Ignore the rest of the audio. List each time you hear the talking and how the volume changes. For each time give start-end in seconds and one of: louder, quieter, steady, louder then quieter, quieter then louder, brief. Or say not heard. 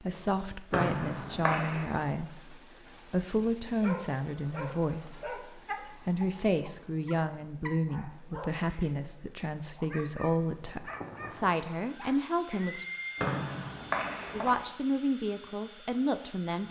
0.0-12.8 steady
14.3-16.6 brief.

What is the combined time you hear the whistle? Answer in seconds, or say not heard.
3 s.